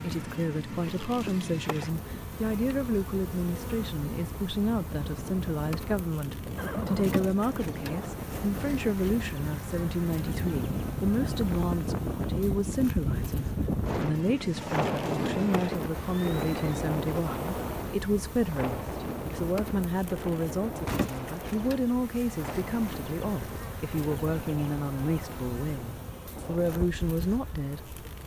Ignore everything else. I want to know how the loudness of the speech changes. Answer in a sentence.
The loudness of the speech stays about the same.